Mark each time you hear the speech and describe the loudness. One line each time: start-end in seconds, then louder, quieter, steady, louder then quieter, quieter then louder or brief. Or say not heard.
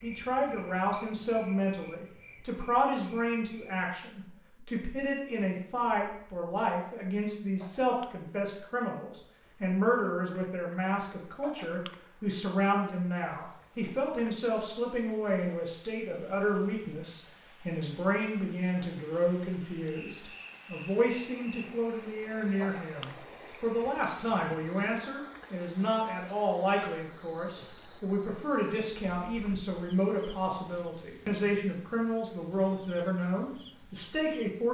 0.0-34.6 steady.